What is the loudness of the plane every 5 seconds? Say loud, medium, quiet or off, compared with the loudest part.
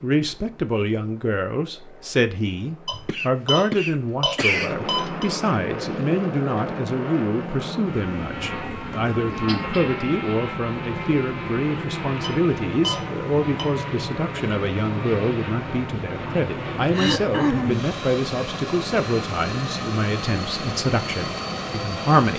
medium, loud, loud, loud, loud.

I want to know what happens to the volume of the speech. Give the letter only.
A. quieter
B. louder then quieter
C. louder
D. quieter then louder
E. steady
E.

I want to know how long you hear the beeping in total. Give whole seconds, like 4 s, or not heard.
4 s.